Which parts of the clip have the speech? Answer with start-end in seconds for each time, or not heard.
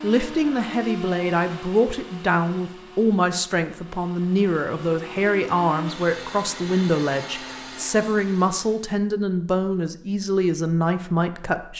0.0-11.7.